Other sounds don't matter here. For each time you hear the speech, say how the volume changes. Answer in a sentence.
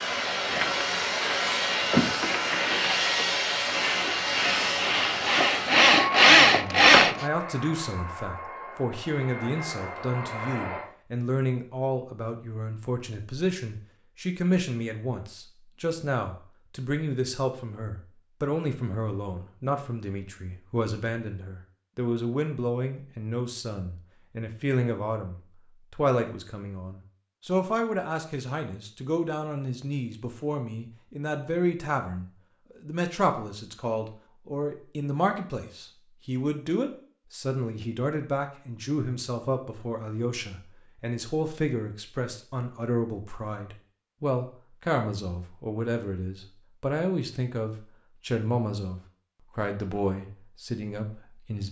You can hear the speech from 6.5 to 51.6 s, at a steady volume.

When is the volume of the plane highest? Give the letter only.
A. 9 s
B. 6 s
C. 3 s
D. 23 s
C.